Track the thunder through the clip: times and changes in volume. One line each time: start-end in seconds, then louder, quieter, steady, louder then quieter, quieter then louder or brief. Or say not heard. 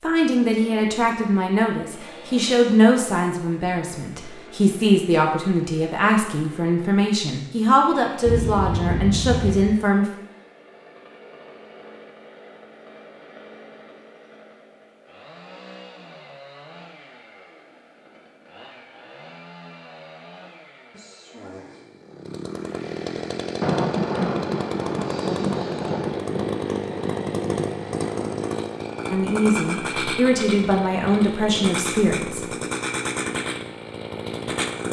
8.2-9.8 brief
23.6-28.6 quieter.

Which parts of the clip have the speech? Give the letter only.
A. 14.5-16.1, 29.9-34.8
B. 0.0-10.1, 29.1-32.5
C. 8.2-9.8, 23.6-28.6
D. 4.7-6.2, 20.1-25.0
B.